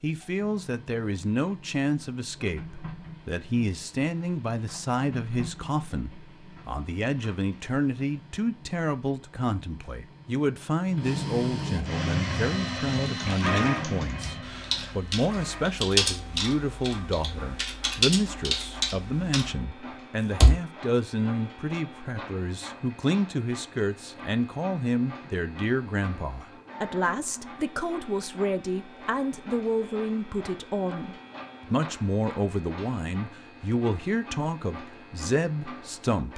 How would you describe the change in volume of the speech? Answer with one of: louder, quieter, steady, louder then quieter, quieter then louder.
steady.